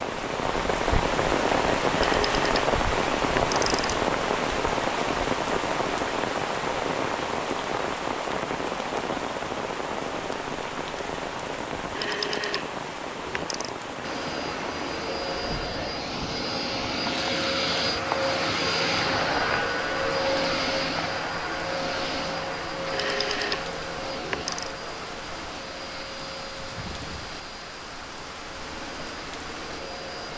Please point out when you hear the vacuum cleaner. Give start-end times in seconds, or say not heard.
14.0-30.3.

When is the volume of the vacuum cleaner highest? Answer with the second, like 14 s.
19 s.